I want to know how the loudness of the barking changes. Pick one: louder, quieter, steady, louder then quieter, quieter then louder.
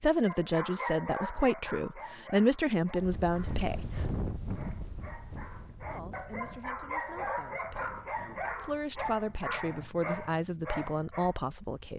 quieter then louder.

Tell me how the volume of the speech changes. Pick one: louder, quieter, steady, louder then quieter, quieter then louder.
quieter then louder.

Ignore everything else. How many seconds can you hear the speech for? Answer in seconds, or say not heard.
10 s.